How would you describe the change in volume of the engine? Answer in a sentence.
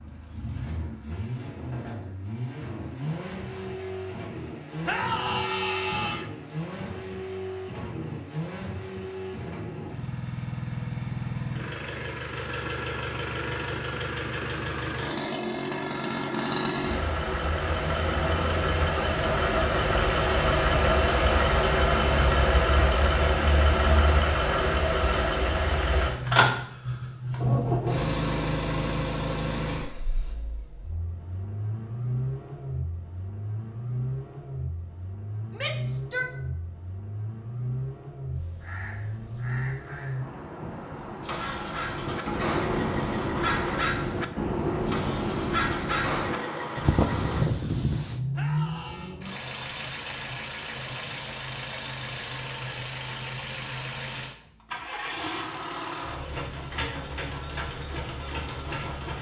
The loudness of the engine goes up, then down.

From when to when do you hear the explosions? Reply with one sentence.
The explosions can't be heard in this clip.